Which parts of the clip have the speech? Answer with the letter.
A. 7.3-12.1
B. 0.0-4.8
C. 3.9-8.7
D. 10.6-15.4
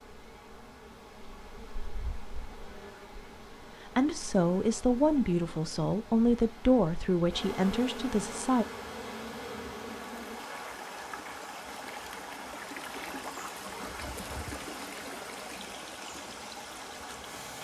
C.